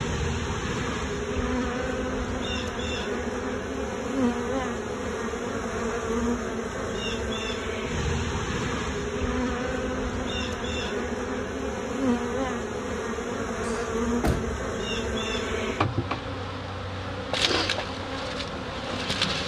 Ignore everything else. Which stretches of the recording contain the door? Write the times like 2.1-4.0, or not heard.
13.7-14.6.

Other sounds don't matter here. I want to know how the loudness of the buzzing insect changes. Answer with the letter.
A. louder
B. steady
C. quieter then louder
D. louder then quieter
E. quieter
B.